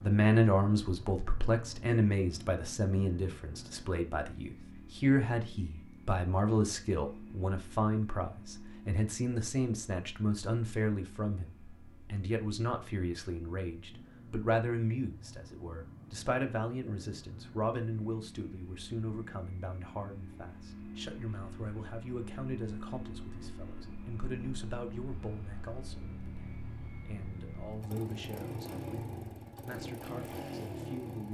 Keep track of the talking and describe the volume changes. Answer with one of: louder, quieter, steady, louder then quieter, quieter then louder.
quieter.